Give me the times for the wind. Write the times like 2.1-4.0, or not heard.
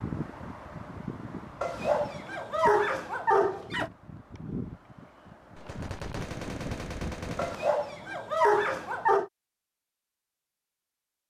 0.0-7.6.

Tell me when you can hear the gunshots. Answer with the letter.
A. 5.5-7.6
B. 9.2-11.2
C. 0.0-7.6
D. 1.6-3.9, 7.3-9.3
A.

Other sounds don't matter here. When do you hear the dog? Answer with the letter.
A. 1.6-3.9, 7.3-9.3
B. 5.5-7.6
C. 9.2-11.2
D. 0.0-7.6
A.